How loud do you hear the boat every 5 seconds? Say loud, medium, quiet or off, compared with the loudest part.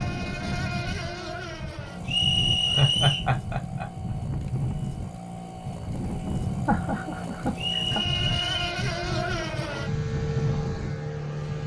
medium, loud, loud.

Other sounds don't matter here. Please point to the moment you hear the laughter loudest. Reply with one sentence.
The loudest moment of the laughter is at 3 seconds.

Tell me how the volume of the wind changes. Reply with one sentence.
The loudness of the wind stays about the same.